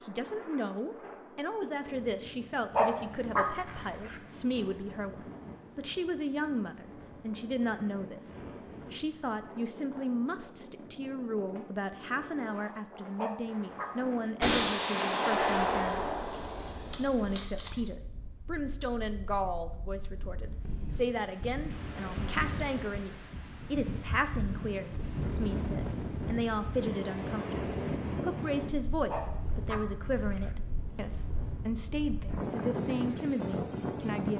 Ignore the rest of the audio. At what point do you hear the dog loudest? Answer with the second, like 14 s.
3 s.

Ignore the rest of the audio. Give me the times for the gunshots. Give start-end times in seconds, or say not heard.
14.4-17.7.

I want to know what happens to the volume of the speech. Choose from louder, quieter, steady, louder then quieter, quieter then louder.
steady.